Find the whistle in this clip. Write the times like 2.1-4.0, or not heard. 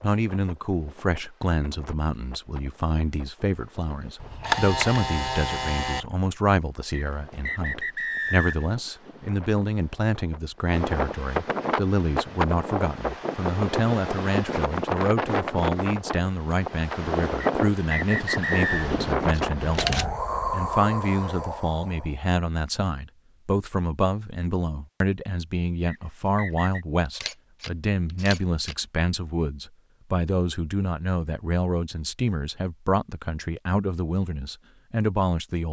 6.9-8.8, 17.4-18.9, 25.9-26.9.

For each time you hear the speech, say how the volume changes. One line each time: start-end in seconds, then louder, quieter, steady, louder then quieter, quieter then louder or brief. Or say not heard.
0.0-35.6 steady.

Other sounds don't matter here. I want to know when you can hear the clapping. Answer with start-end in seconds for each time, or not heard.
not heard.